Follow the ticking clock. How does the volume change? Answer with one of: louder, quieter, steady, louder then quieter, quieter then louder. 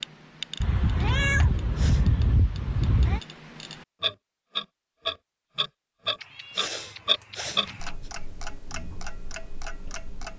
louder then quieter.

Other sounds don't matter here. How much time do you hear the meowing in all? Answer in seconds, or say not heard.
4 s.